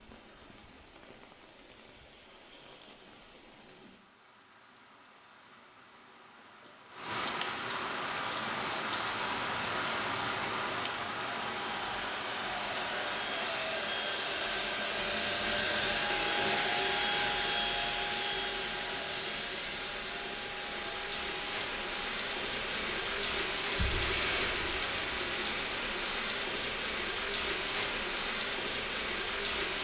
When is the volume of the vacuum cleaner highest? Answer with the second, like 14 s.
17 s.